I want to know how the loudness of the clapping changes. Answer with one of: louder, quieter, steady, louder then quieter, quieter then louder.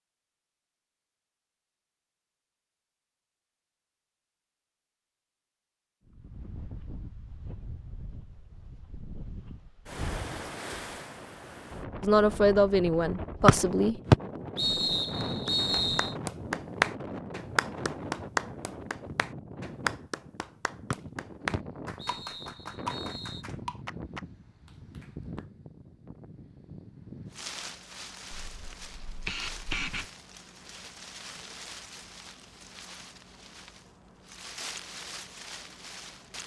quieter.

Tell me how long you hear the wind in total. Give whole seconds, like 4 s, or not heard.
30 s.